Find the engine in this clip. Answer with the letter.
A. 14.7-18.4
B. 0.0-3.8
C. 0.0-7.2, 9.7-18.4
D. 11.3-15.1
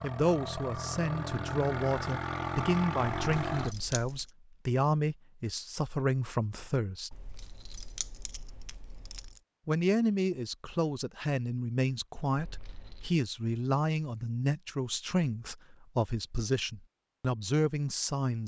B.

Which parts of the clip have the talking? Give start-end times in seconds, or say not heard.
0.0-7.2, 9.7-18.4.